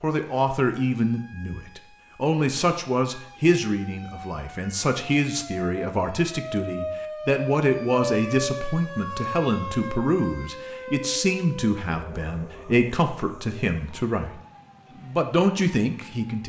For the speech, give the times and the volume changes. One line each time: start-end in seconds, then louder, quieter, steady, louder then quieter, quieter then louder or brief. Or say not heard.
0.0-14.4 steady
15.0-16.4 brief.